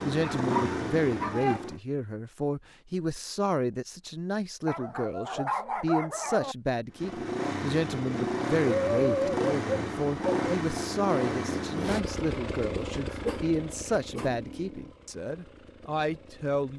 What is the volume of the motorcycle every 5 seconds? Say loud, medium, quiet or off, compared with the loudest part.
loud, loud, loud, quiet.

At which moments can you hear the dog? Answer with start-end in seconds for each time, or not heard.
0.2-1.6, 4.7-6.5, 8.7-10.4, 13.2-14.3.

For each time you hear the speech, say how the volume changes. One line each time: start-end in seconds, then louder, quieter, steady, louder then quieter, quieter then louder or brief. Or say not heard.
0.0-16.7 steady.